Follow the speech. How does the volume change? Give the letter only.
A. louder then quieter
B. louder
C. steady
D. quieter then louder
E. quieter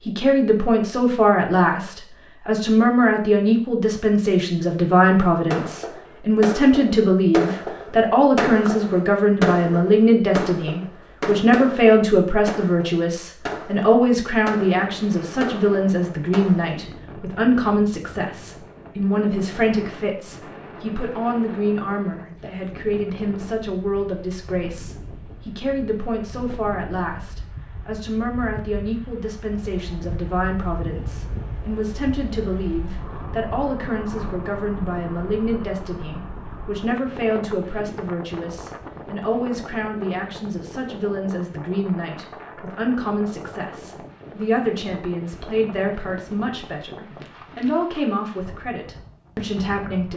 E.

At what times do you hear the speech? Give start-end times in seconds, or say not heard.
0.1-50.1.